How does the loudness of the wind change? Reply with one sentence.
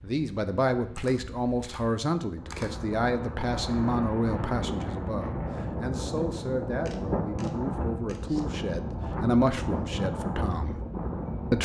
The loudness of the wind goes up.